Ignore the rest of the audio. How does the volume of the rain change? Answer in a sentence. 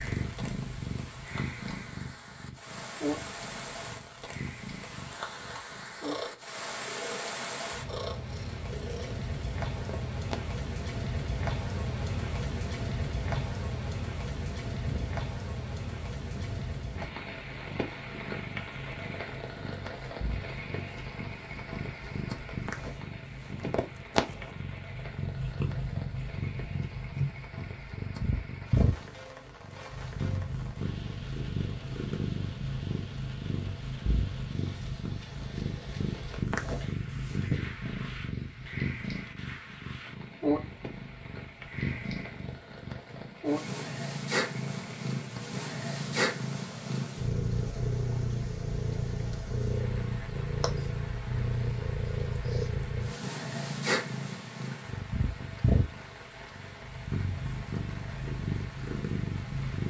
The volume of the rain goes down.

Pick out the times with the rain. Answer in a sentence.
The rain can be heard from 0.0 to 59.8 s.